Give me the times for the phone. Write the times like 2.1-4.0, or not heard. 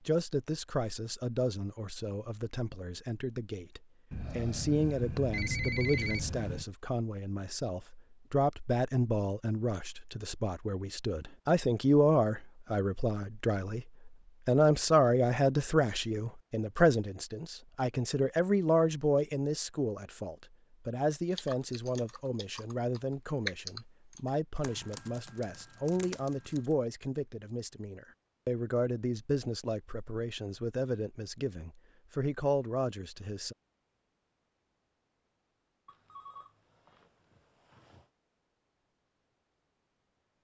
4.1-6.7, 35.9-38.1.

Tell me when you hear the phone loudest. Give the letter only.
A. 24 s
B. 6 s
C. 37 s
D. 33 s
B.